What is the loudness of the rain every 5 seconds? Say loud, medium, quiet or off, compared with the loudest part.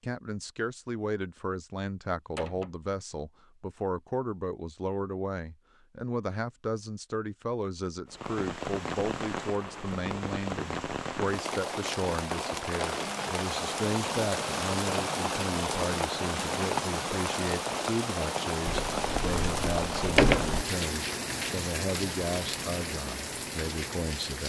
off, medium, loud, loud, loud.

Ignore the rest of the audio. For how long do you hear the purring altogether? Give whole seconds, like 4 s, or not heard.
not heard.